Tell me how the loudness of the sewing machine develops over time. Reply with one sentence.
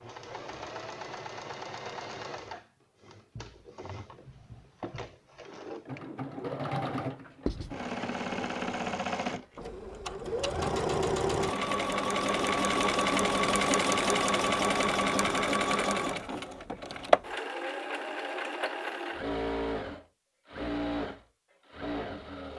The volume of the sewing machine goes up, then down.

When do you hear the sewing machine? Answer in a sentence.
You can hear the sewing machine from 0.0 to 22.5 s.